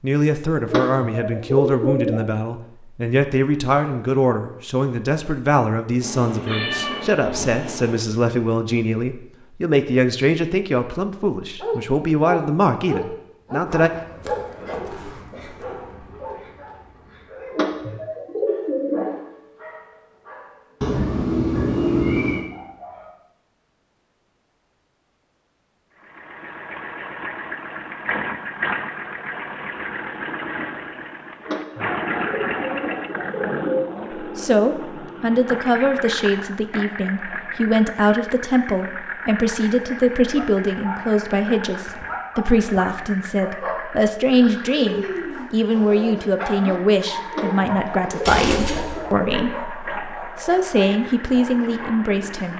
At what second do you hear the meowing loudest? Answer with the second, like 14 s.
22 s.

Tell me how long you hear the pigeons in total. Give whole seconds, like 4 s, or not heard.
8 s.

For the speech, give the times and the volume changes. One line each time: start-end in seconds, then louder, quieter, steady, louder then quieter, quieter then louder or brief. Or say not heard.
0.0-13.9 steady
34.1-52.5 steady.